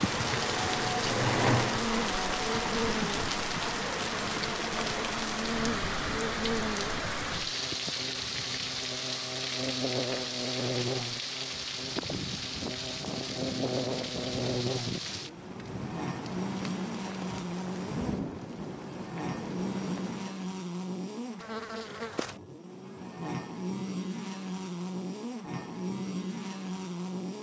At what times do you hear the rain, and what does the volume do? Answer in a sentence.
You can hear the rain from 0.0 to 20.4 s, getting quieter.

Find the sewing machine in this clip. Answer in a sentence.
You can hear the sewing machine from 0.0 to 1.9 s.